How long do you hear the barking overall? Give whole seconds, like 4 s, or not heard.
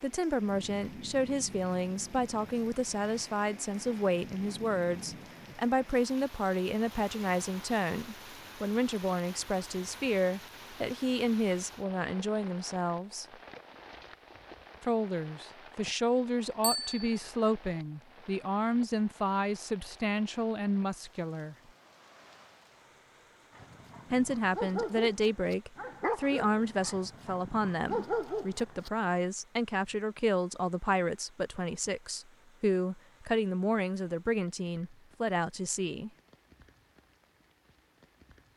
5 s.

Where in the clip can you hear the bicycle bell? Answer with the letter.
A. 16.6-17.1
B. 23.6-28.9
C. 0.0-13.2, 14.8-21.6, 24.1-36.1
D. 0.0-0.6
A.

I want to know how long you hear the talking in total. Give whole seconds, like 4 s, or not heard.
32 s.